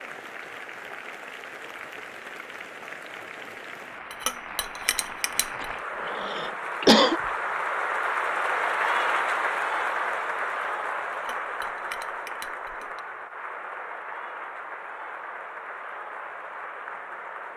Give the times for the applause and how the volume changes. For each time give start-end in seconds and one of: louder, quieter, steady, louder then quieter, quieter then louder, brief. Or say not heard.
0.0-17.5 louder then quieter.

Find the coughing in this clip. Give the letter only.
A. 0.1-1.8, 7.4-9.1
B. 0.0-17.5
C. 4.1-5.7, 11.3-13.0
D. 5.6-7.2
D.